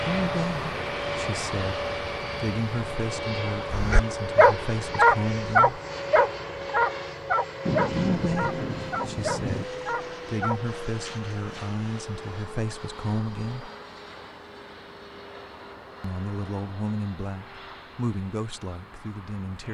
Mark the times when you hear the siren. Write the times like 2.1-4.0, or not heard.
not heard.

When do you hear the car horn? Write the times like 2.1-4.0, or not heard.
not heard.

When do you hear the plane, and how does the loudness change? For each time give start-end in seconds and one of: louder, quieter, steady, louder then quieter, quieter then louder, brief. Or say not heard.
0.0-19.6 quieter.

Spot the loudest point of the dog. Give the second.
5 s.